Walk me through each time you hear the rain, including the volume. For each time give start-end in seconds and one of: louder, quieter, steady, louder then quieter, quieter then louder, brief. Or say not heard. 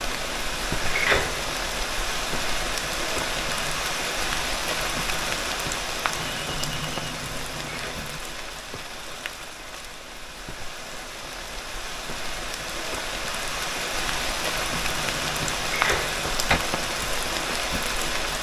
0.0-18.3 quieter then louder.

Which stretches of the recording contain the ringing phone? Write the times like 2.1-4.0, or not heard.
3.4-3.9, 6.2-8.2, 14.8-15.7.